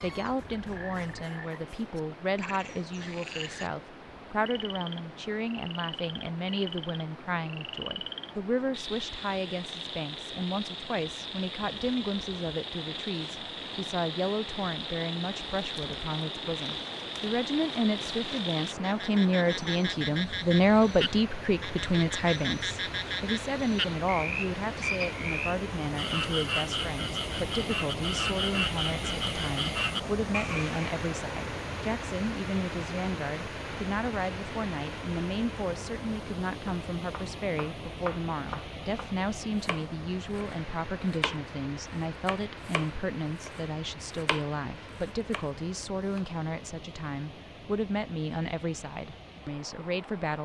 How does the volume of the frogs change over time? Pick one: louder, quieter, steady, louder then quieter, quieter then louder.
louder.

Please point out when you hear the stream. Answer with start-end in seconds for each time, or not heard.
0.0-50.4.